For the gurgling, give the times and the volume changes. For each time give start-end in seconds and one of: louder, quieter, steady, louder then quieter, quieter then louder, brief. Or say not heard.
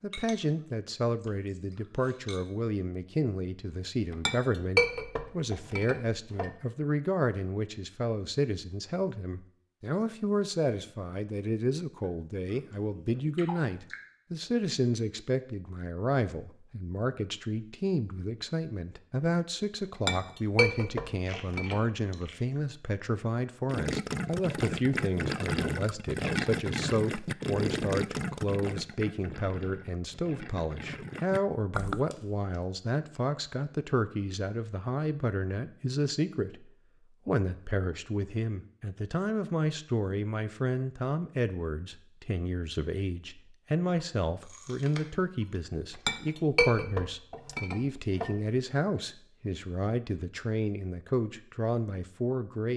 23.6-32.0 quieter.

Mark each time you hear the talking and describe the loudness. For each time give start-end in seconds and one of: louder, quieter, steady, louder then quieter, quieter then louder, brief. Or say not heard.
0.0-52.7 steady.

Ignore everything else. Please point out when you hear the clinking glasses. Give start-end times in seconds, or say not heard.
4.0-6.5, 20.1-21.8, 46.0-48.4.